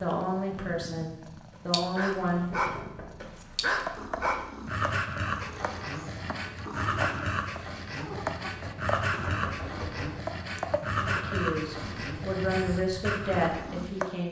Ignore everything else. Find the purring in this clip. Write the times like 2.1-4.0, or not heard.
0.0-14.2.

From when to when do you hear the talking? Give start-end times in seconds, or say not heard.
0.0-2.6, 11.1-14.2.